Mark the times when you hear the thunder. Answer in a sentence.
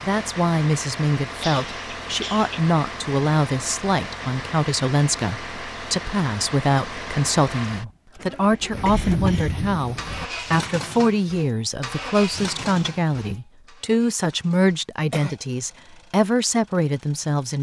The thunder can be heard from 8.7 to 10.2 s.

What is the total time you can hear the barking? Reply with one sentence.
You can't hear the barking here.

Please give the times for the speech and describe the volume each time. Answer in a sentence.
The speech can be heard from 0.0 to 17.5 s, at a steady volume.